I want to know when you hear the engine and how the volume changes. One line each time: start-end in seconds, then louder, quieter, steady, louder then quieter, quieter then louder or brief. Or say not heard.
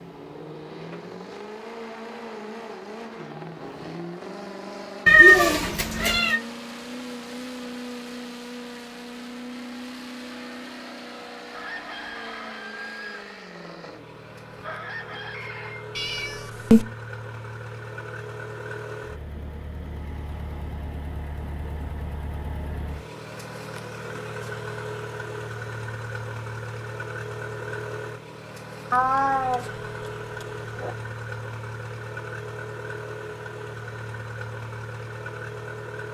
0.0-36.0 steady.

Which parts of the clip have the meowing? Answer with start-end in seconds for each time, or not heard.
5.0-6.4, 15.9-16.9, 28.9-29.6, 30.4-30.9.